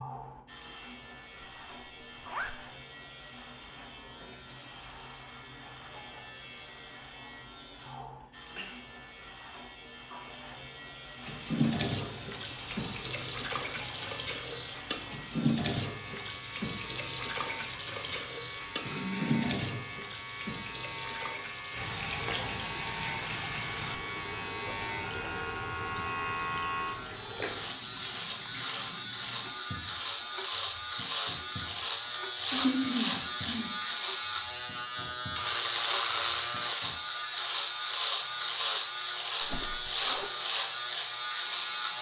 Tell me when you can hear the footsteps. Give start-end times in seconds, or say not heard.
not heard.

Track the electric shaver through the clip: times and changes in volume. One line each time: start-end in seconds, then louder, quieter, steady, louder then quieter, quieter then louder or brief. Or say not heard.
0.0-41.9 louder.